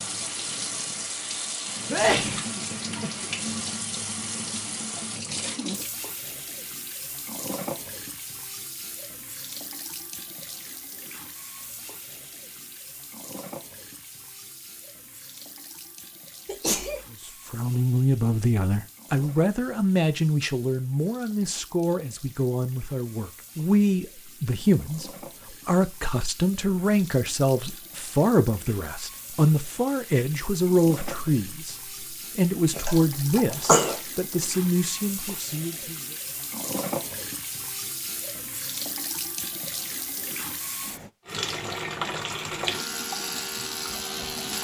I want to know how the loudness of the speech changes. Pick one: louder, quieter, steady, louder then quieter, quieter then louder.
steady.